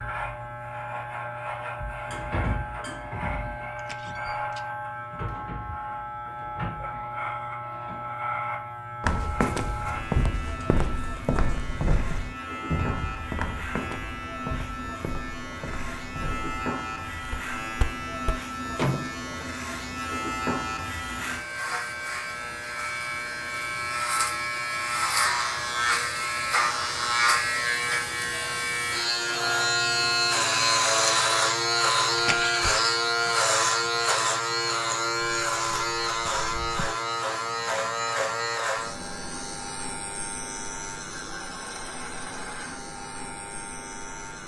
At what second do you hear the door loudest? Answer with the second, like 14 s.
19 s.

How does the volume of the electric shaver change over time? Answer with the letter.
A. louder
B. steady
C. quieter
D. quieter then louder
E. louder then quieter
E.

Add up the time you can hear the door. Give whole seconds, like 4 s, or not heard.
2 s.